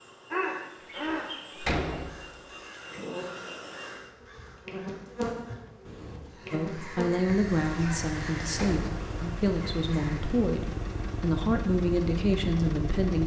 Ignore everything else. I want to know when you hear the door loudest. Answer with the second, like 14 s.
2 s.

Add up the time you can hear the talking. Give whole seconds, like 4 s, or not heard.
7 s.